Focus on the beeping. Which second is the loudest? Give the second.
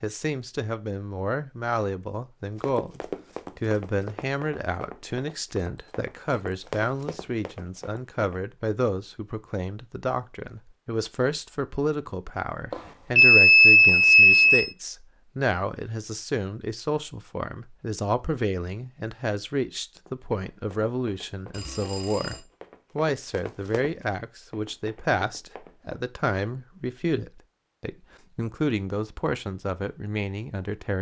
14 s.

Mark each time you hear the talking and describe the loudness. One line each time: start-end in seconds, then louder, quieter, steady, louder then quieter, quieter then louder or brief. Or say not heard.
0.0-30.9 steady.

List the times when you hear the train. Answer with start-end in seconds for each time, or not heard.
not heard.